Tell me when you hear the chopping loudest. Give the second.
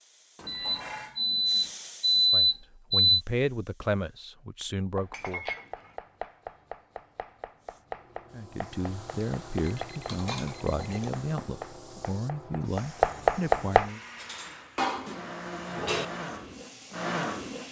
13 s.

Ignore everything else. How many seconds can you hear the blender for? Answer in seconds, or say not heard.
4 s.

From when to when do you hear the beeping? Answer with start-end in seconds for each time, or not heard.
0.5-3.2, 9.6-10.9.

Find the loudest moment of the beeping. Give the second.
2 s.